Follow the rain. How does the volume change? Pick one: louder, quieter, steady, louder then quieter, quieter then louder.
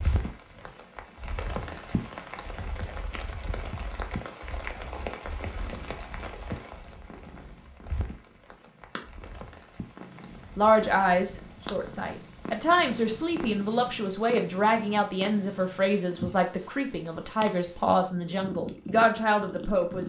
quieter.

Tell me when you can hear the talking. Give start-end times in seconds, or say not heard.
10.6-20.0.